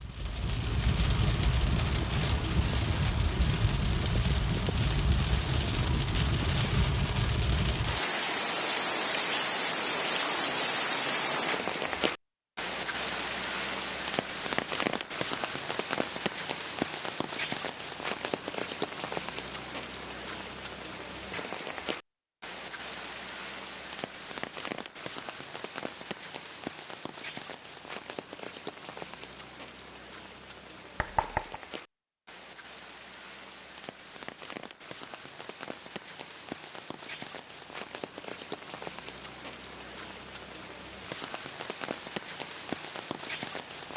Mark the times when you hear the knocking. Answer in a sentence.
The knocking can be heard from 31.0 to 31.6 s.